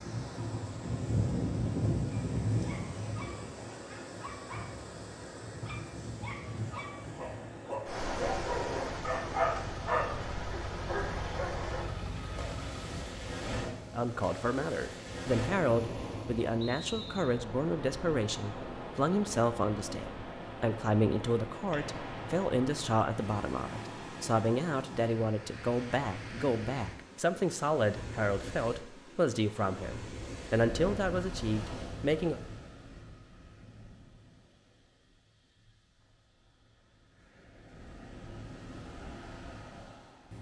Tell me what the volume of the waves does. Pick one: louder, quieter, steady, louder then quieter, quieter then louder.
quieter.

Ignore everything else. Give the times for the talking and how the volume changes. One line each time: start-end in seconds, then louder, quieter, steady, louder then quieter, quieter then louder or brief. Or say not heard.
13.9-32.4 steady.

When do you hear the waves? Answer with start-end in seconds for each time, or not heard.
0.0-40.3.